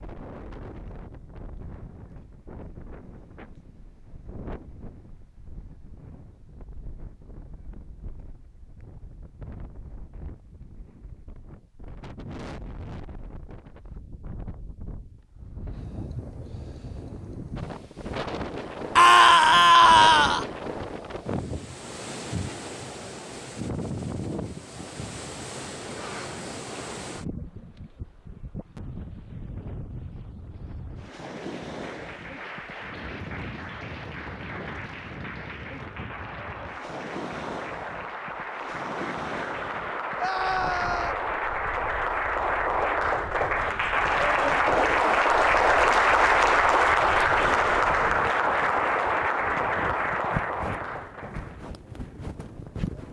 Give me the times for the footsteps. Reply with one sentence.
You can't hear the footsteps here.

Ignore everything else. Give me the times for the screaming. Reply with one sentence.
The screaming can be heard from 18.9 to 20.4 s and from 40.1 to 41.1 s.